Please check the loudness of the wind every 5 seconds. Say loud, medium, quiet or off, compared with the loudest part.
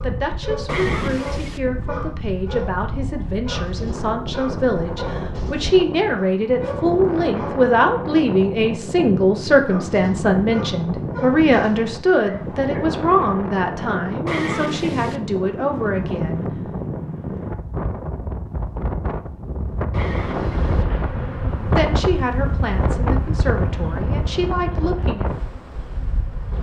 medium, loud, loud, loud, loud, medium.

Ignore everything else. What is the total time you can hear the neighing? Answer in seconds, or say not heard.
3 s.